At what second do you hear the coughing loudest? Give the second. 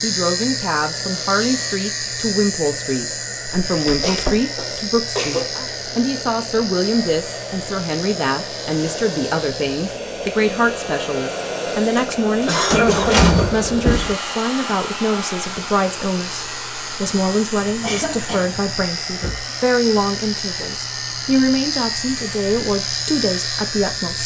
13 s.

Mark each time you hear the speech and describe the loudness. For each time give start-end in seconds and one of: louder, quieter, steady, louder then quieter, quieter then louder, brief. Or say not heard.
0.0-24.2 steady.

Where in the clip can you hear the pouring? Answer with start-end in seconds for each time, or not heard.
not heard.